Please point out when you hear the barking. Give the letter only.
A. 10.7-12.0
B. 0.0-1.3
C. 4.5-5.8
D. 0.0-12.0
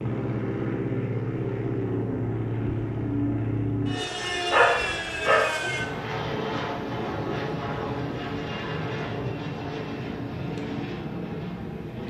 C.